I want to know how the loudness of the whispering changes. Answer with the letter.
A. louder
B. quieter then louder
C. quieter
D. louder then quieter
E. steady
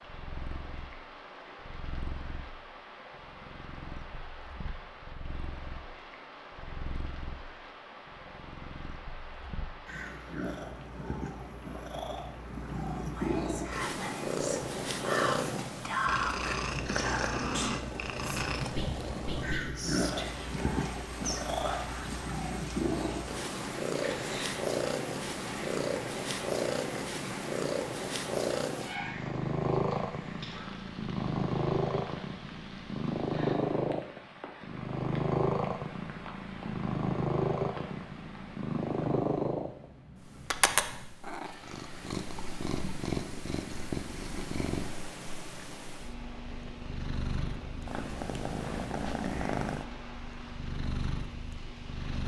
D.